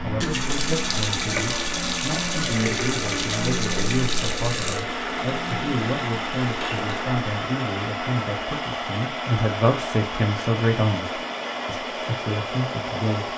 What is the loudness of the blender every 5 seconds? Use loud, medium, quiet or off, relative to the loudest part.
medium, loud, loud.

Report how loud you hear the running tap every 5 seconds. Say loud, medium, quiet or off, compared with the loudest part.
loud, medium, off.